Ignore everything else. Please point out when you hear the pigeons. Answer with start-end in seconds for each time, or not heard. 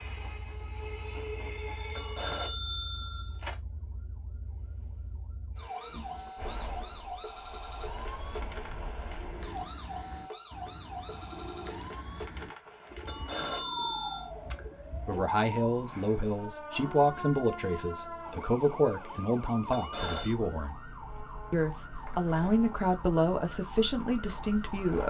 9.0-15.3.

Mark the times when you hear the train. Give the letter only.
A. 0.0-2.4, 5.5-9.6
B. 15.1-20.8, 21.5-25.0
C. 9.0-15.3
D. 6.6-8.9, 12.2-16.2
A.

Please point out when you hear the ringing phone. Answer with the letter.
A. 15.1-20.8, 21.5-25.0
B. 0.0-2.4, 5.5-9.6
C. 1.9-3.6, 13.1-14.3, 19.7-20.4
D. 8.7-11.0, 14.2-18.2
C.